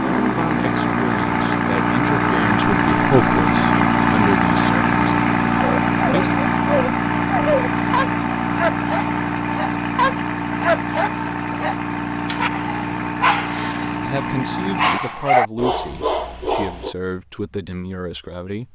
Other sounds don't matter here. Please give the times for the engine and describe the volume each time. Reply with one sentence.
You can hear the engine from 0.0 to 15.0 s, getting quieter.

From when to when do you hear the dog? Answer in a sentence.
You can hear the dog from 5.5 to 16.9 s.